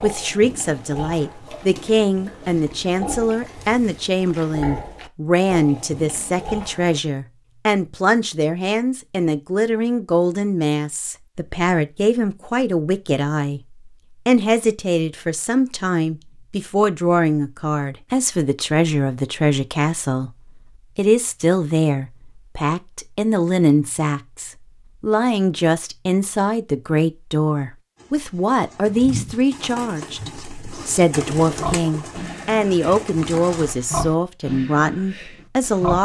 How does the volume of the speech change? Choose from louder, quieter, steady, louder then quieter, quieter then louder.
steady.